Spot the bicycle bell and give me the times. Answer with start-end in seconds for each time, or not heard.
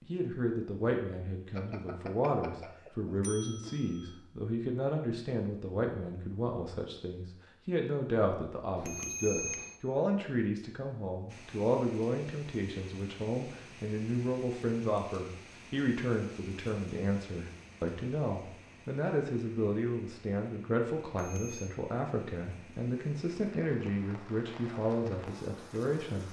1.6-4.2, 8.8-9.8, 21.1-21.7.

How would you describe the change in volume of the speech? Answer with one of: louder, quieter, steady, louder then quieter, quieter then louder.
steady.